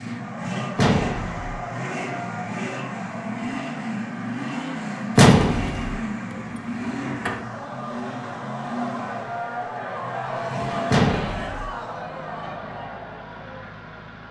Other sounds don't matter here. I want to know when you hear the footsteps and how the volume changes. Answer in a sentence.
You can't hear the footsteps here.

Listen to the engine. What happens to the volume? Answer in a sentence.
The volume of the engine goes down.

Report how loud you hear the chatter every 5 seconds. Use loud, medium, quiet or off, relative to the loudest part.
medium, loud, loud.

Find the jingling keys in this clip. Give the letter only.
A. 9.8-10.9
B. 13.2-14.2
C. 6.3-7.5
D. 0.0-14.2
C.